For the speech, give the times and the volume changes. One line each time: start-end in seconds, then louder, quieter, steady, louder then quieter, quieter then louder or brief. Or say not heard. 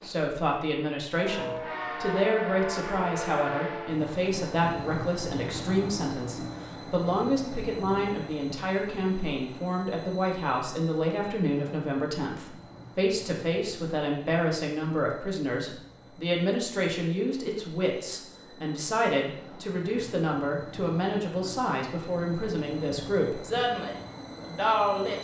0.0-25.2 steady.